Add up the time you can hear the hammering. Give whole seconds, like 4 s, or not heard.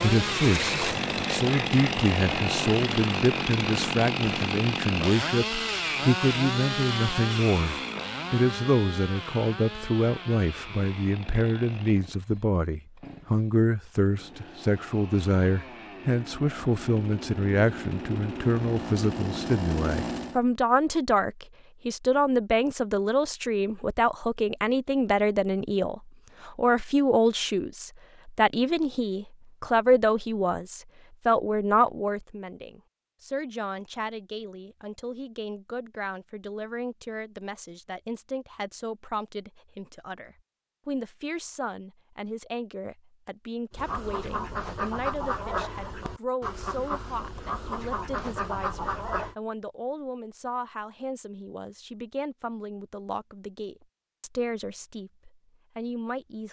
not heard.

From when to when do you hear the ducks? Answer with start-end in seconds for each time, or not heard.
0.1-4.5, 43.7-49.4.